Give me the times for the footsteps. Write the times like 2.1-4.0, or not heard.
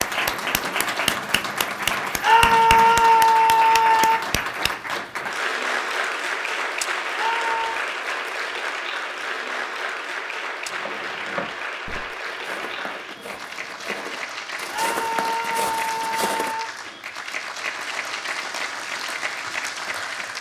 10.7-16.6.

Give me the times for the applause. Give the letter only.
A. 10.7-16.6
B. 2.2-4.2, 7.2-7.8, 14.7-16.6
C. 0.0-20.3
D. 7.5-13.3
C.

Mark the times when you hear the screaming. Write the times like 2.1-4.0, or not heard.
2.2-4.2, 7.2-7.8, 14.7-16.6.